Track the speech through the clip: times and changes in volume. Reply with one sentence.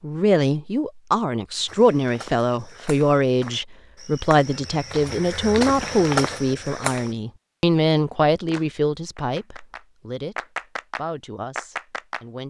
You can hear the speech from 0.0 to 12.4 s, getting quieter.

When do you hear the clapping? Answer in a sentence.
The clapping can be heard from 8.4 to 12.2 s.